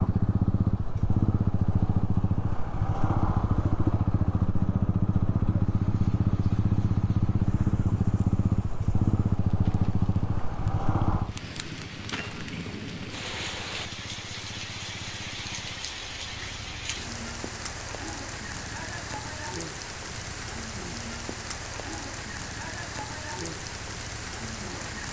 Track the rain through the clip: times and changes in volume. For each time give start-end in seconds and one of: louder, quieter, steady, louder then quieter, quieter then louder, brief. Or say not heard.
5.5-25.0 louder.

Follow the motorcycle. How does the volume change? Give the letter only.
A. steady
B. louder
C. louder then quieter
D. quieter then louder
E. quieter
E.